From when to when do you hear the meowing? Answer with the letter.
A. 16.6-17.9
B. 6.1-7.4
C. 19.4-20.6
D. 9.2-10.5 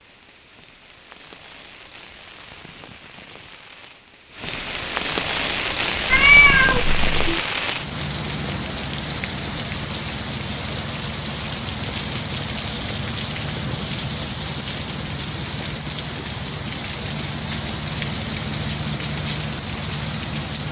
B.